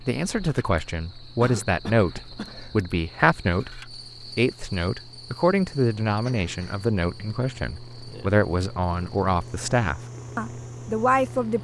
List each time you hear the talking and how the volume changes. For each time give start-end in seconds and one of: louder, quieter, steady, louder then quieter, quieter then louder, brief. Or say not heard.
0.1-11.5 steady.